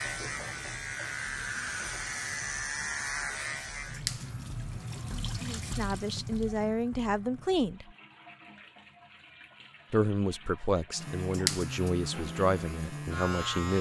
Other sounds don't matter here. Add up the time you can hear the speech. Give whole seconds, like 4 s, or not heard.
6 s.